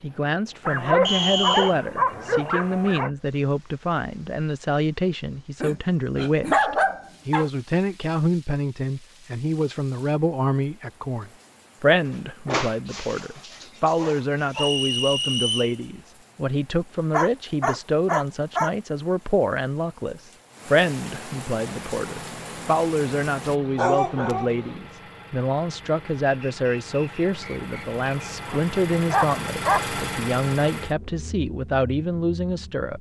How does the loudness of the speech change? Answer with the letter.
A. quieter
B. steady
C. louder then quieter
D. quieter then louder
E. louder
B.